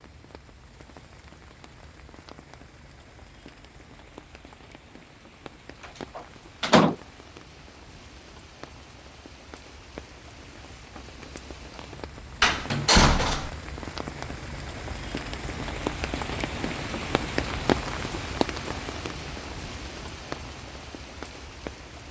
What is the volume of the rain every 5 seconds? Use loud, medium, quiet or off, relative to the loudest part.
quiet, quiet, medium, loud, medium.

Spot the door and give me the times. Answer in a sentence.
You can hear the door from 6.2 to 7.0 s and from 12.4 to 13.5 s.